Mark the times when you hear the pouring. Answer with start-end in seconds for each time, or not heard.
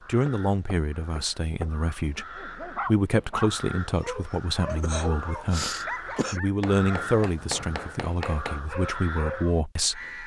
not heard.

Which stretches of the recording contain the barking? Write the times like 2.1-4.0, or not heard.
2.4-9.5.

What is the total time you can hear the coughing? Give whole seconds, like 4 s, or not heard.
2 s.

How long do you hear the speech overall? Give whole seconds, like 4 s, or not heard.
10 s.